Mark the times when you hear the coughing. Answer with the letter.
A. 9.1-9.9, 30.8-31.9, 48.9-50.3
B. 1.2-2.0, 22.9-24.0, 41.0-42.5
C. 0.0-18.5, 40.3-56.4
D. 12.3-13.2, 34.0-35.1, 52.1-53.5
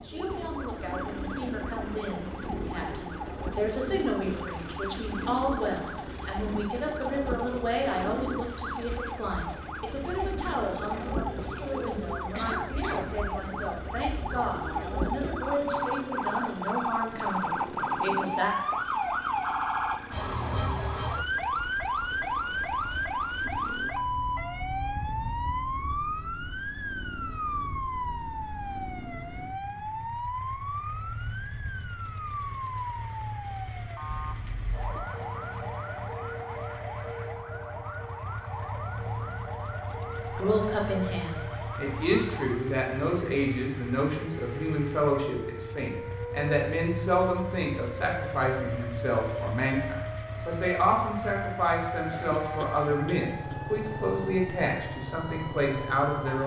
D.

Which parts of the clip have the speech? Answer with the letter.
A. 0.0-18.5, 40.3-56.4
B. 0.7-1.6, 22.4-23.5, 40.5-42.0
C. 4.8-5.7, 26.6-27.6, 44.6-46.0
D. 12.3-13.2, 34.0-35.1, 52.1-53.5
A.